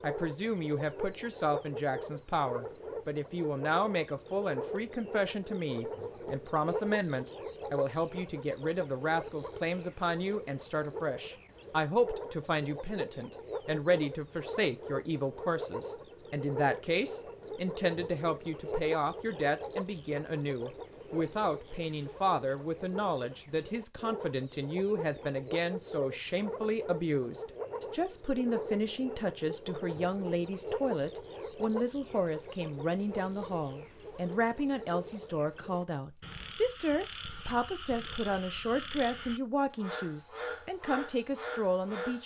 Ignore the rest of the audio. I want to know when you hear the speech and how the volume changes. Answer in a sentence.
You can hear the speech from 0.0 to 42.2 s, at a steady volume.